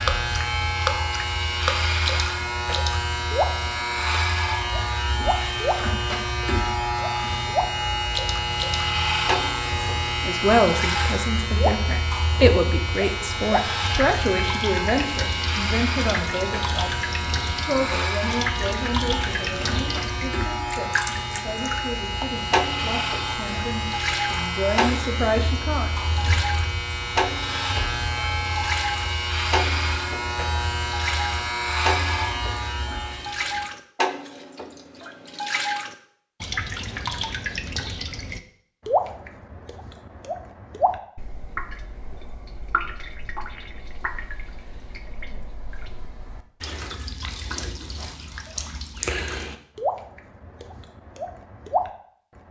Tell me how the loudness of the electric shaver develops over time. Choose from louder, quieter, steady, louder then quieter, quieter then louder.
steady.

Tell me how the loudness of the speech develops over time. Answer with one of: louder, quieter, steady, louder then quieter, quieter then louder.
quieter then louder.